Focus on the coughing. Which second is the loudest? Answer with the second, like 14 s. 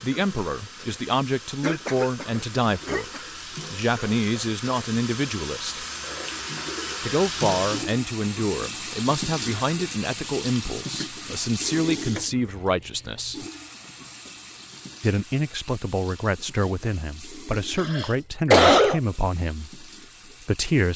19 s.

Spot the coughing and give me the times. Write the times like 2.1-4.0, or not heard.
1.6-3.2, 17.8-19.0.